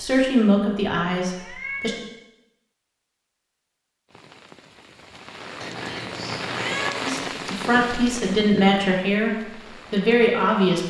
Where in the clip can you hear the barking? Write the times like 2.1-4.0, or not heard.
not heard.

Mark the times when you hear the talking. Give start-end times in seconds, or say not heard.
0.0-1.9, 7.0-10.8.